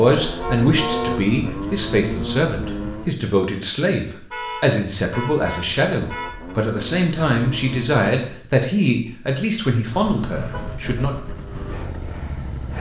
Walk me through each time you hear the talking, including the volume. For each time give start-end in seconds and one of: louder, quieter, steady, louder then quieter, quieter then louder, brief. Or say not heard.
0.0-11.2 steady.